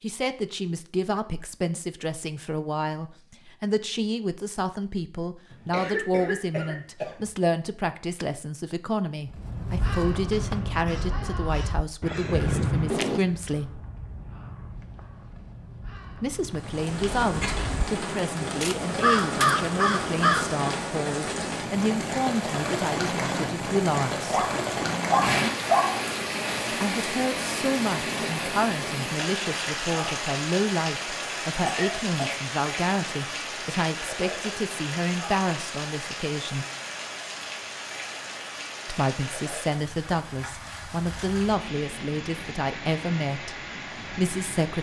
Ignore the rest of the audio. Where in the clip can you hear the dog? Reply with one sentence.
The dog can be heard from 24.3 to 26.1 s.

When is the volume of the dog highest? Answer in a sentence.
The loudest moment of the dog is at 26 seconds.